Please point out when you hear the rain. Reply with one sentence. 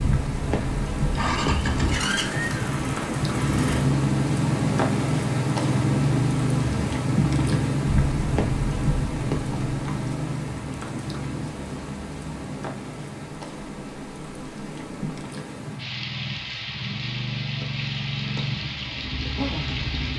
The rain can be heard from 0.0 to 20.1 s.